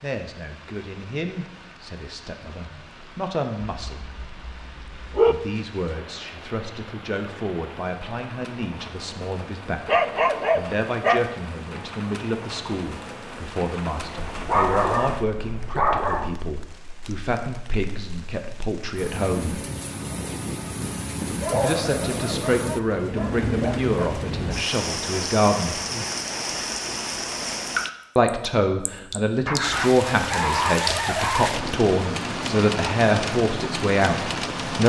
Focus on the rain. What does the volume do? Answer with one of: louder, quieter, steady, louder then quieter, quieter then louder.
louder.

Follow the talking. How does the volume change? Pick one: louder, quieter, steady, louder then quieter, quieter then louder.
louder.